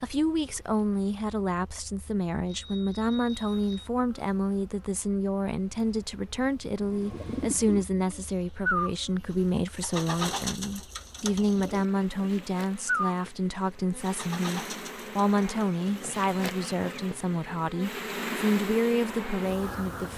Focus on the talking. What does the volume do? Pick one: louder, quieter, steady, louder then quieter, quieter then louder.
steady.